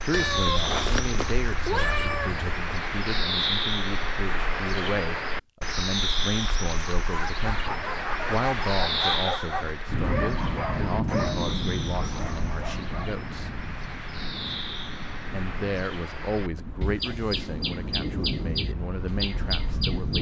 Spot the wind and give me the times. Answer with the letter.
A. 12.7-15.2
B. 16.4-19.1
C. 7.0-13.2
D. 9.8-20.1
D.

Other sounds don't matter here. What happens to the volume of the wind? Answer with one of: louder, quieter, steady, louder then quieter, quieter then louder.
quieter then louder.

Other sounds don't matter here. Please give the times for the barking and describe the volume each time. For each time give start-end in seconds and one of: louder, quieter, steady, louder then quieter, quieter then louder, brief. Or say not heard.
7.0-13.2 quieter.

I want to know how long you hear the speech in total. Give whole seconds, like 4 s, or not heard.
18 s.